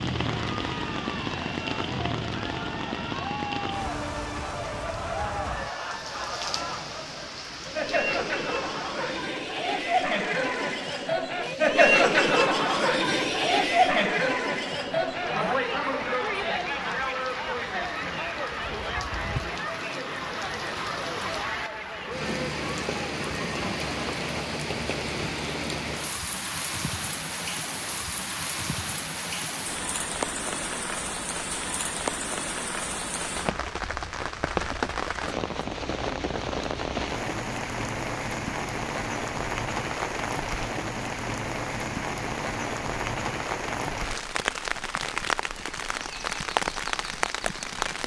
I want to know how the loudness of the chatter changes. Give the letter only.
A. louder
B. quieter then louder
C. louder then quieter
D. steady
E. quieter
C.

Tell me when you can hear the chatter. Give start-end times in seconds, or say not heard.
0.2-24.4.